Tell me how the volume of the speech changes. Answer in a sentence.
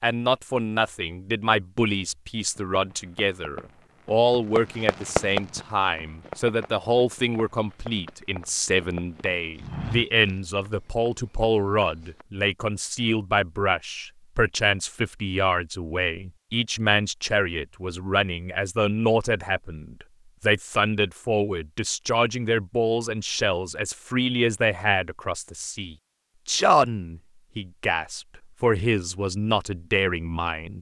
The volume of the speech stays about the same.